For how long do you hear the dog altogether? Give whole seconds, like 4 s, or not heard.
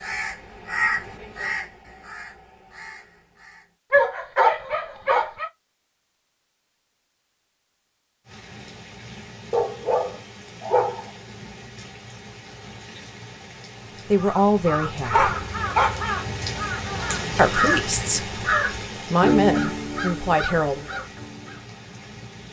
4 s.